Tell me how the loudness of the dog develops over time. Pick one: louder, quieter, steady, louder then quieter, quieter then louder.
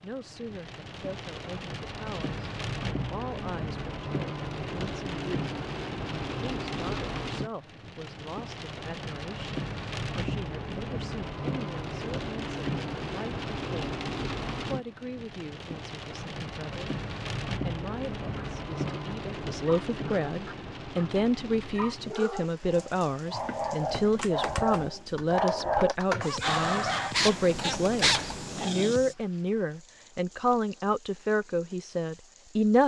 louder.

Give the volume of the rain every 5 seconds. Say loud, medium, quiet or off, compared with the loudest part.
loud, loud, loud, loud, medium, quiet, quiet.